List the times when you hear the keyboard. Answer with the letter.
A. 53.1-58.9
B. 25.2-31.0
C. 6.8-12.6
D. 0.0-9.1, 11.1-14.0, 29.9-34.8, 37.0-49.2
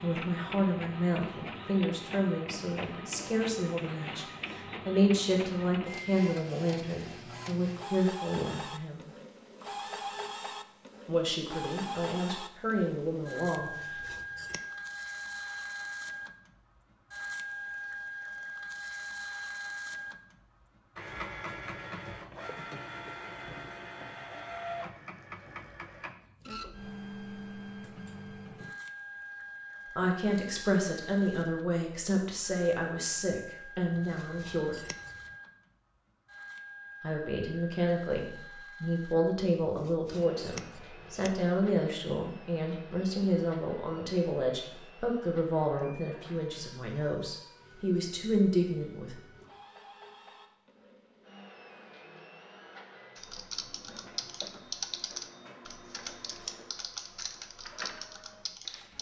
A.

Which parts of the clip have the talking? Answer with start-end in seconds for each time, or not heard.
0.0-9.1, 11.1-14.0, 29.9-34.8, 37.0-49.2.